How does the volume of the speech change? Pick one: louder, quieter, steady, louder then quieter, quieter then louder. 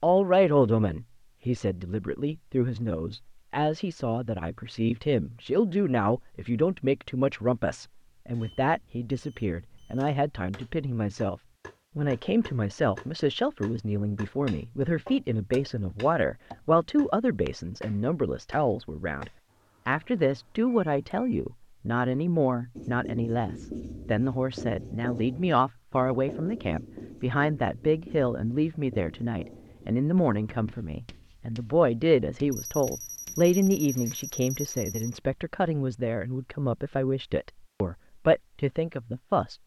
steady.